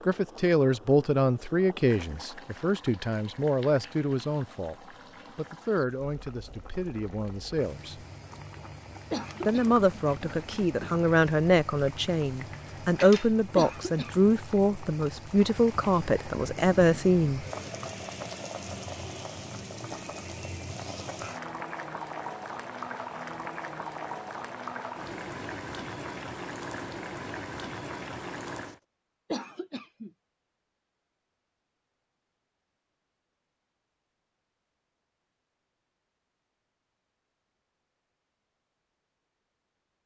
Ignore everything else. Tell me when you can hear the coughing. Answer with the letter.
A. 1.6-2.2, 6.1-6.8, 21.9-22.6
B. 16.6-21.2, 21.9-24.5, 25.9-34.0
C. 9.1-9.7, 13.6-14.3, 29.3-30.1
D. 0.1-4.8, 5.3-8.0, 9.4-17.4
C.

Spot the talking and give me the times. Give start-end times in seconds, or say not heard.
0.1-4.8, 5.3-8.0, 9.4-17.4.